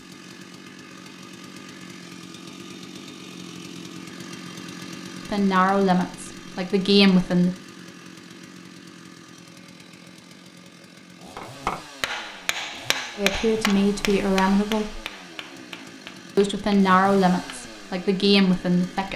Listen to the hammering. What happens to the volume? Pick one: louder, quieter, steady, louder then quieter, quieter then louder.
quieter.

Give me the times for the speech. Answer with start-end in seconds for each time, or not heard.
5.2-7.5, 13.2-15.0, 16.4-19.1.